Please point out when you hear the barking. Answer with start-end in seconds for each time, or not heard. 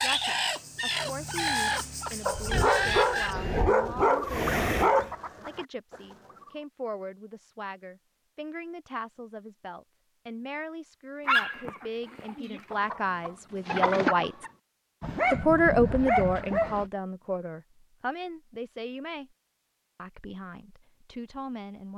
2.2-5.1, 11.2-12.3, 15.0-16.9.